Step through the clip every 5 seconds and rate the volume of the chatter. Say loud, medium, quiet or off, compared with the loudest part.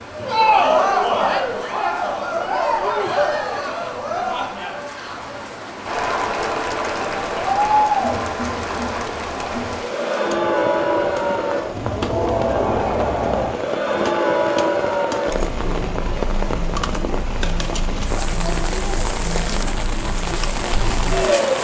loud, loud, loud, medium, loud.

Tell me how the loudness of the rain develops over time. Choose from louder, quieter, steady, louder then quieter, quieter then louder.
louder.